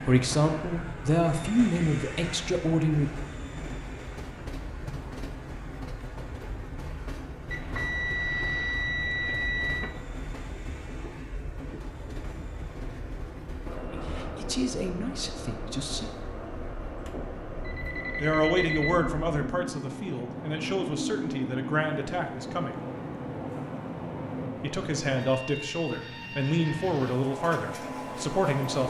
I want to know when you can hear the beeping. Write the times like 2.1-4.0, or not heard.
7.5-9.9, 17.6-19.1.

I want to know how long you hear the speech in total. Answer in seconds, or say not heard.
14 s.